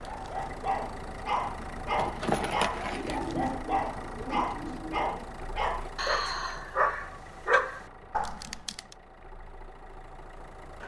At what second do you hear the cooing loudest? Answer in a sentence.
The volume of the cooing peaks at 3 seconds.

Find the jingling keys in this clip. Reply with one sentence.
The jingling keys can be heard from 1.9 to 3.2 s.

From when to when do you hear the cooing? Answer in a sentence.
You can hear the cooing from 2.9 to 5.2 s.